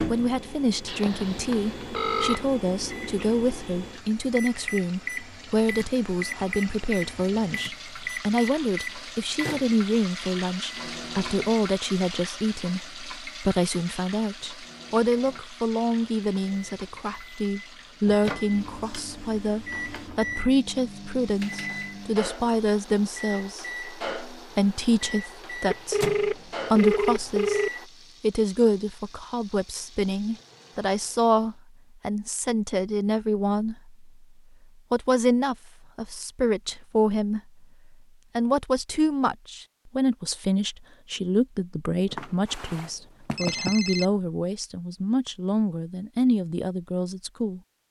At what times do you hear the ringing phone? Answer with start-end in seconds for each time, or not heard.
0.8-2.5, 25.6-27.7, 42.1-44.0.